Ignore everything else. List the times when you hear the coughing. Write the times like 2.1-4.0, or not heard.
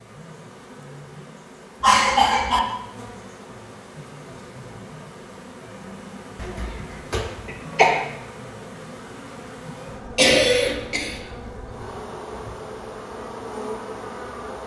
1.8-2.6, 6.3-8.0, 10.2-11.2.